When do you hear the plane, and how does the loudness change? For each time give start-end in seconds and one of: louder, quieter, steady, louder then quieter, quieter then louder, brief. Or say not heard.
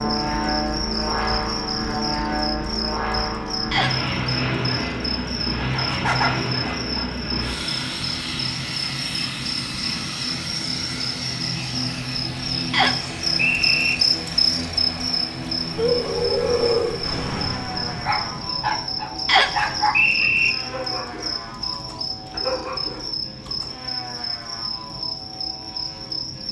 0.0-26.4 quieter.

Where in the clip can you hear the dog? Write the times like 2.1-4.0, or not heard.
5.6-7.2, 15.8-23.8.